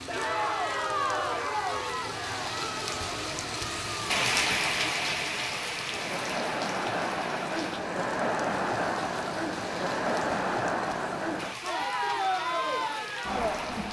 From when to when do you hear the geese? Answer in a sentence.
You can't hear the geese here.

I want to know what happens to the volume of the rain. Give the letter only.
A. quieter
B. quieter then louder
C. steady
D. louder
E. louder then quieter
E.